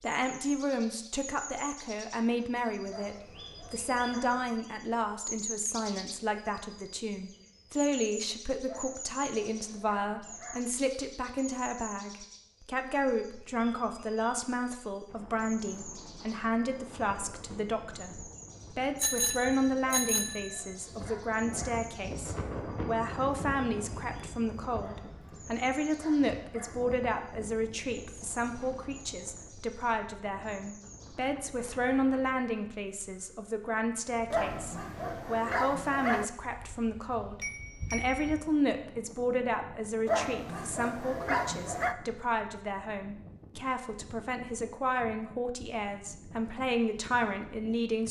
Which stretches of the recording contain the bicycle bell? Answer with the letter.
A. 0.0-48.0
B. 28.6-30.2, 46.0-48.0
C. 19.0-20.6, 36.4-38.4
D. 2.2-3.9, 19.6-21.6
C.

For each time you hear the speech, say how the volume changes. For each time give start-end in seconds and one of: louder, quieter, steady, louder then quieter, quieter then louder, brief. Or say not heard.
0.0-48.0 steady.